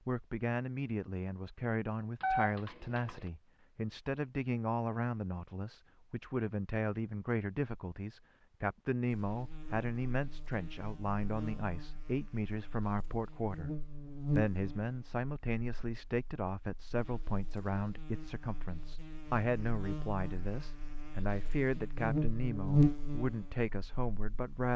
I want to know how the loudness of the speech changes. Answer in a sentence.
The loudness of the speech stays about the same.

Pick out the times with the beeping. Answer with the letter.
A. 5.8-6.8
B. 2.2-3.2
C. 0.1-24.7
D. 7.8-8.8
B.